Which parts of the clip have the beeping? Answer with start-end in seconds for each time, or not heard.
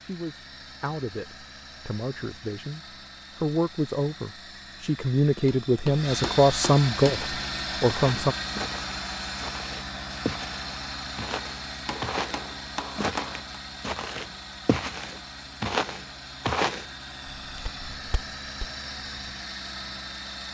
not heard.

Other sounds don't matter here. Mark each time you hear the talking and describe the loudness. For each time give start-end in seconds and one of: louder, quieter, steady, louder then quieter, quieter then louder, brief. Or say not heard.
0.0-8.3 louder.